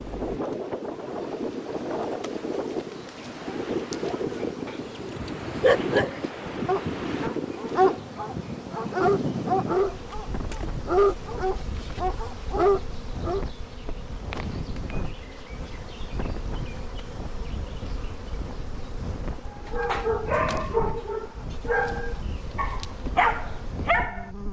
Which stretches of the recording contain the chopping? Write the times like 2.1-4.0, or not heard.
not heard.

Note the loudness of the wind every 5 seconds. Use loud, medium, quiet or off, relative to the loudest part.
loud, loud, medium, medium, medium.